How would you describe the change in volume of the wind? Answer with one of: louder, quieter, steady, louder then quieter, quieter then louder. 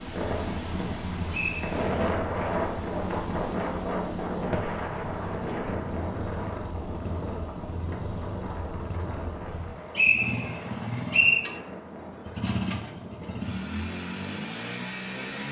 quieter.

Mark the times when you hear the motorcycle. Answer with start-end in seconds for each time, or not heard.
0.0-15.4.